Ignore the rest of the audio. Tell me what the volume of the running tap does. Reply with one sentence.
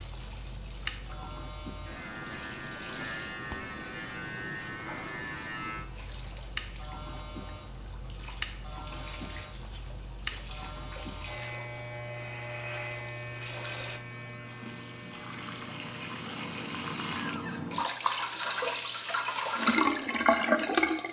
The volume of the running tap goes up.